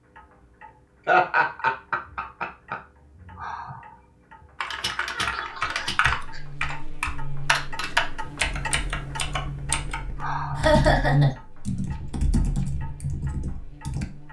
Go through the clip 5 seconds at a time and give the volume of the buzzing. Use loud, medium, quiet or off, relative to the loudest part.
off, medium, loud.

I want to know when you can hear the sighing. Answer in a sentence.
You can hear the sighing from 3.4 to 4.5 s and from 10.2 to 10.8 s.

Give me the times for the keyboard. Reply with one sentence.
The keyboard can be heard from 4.6 to 14.1 s.